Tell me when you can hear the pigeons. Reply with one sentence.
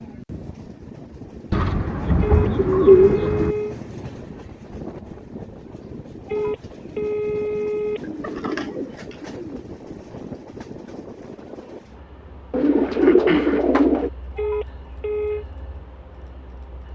You can hear the pigeons from 1.5 to 3.5 s, from 8.0 to 9.6 s and from 12.5 to 14.1 s.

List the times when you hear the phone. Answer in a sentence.
The phone can be heard from 2.2 to 3.8 s, from 6.2 to 8.0 s and from 14.3 to 15.4 s.